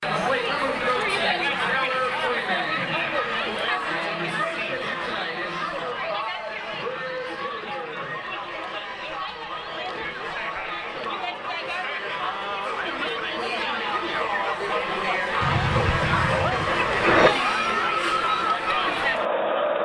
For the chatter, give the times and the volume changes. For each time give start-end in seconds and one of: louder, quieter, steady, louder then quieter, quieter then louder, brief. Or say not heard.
0.0-19.7 quieter then louder.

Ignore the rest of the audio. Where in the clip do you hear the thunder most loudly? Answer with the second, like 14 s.
17 s.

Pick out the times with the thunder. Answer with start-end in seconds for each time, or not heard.
15.4-17.3.